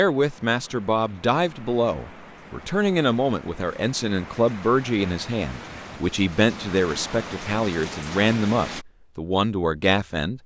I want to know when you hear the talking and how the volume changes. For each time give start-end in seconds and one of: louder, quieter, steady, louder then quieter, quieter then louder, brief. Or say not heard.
0.0-10.4 steady.